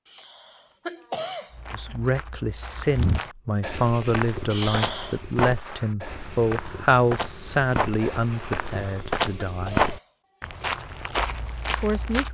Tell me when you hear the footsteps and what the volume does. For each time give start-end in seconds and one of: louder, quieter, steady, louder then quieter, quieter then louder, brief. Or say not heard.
1.5-12.2 louder.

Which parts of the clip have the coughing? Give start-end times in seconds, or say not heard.
0.1-2.1, 4.5-5.2, 8.6-10.7.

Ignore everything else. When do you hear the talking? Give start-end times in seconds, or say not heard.
1.7-9.8, 11.7-12.2.